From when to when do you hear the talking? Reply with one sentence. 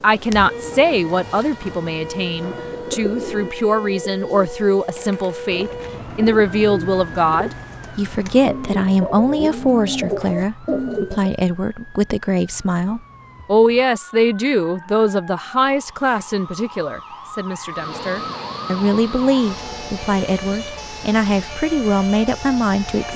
The talking can be heard from 0.0 to 23.1 s.